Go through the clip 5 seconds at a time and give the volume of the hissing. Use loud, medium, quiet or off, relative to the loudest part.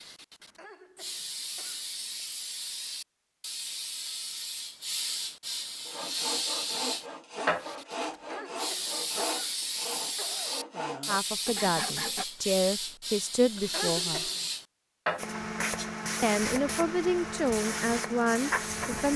medium, loud, loud, loud.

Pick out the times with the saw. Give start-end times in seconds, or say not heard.
5.8-12.2.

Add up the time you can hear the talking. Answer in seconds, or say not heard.
6 s.